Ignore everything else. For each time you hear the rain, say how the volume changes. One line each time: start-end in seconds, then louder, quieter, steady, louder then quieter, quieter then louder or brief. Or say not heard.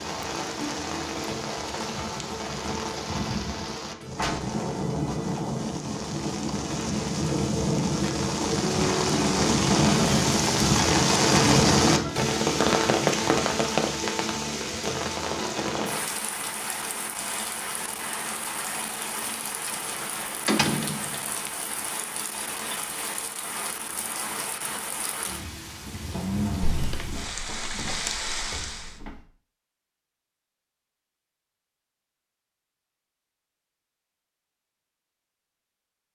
0.0-29.0 louder then quieter.